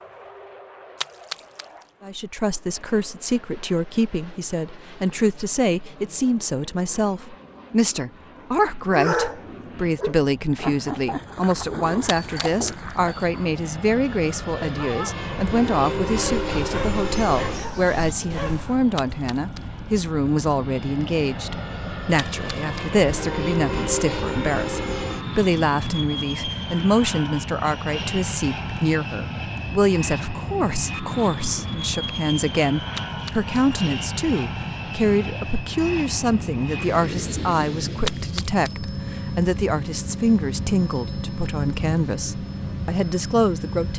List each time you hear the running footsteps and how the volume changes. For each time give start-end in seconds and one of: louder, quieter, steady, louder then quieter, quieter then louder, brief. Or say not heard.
not heard.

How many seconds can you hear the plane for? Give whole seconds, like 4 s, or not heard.
44 s.